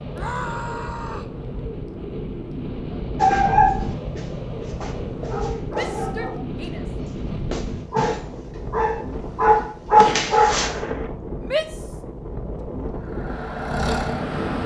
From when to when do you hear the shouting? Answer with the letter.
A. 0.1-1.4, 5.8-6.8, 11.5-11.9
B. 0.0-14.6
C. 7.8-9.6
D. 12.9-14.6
A.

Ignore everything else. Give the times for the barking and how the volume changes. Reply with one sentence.
The barking can be heard from 3.1 to 10.7 s, getting quieter then louder.